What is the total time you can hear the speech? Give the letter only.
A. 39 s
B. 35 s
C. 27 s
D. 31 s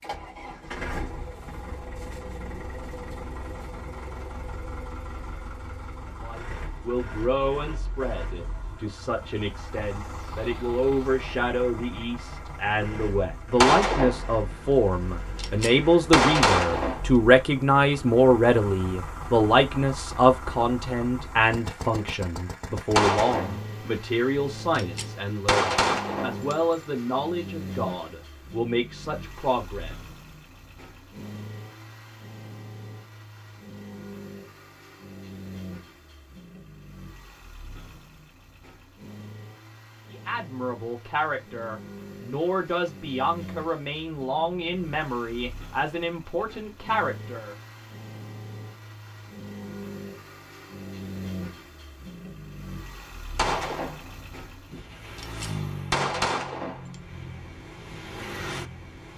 D.